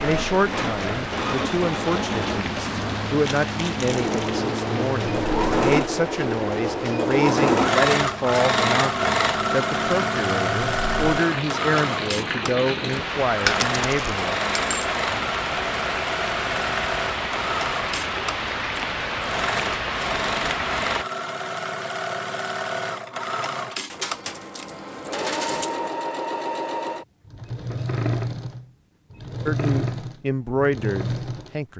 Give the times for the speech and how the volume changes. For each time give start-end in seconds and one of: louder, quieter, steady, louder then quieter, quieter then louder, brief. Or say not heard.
0.0-14.3 steady
29.4-31.7 brief.